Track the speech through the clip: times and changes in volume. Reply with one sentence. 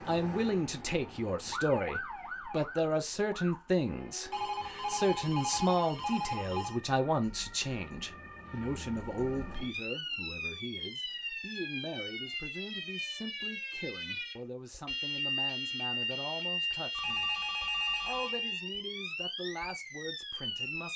The speech can be heard from 0.1 to 20.9 s, getting quieter.